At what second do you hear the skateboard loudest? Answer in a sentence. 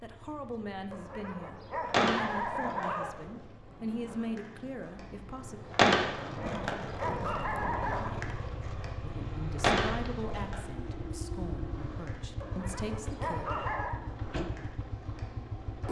The volume of the skateboard peaks at 6 seconds.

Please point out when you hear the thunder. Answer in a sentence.
You can't hear the thunder here.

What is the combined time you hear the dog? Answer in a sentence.
You can hear the dog for 6 seconds altogether.